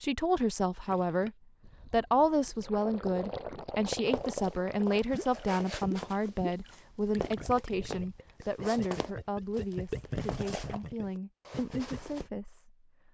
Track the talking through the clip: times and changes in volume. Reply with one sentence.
You can hear the talking briefly from 0.0 to 1.3 s; and from 1.9 to 13.0 s, getting quieter.